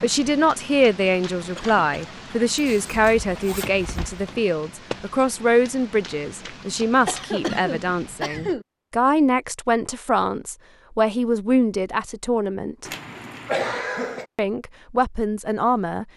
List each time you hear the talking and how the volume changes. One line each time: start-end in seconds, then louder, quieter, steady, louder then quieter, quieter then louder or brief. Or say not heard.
0.0-12.9 steady
14.3-16.1 brief.